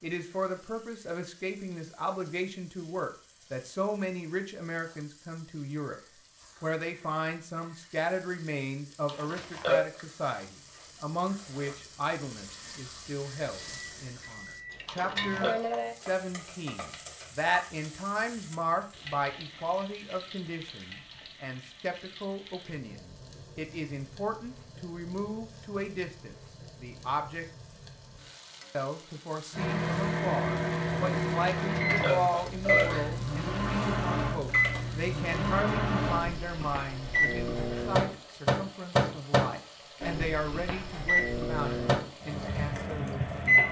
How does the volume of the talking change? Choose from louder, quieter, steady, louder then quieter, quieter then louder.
steady.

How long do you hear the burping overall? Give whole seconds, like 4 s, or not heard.
3 s.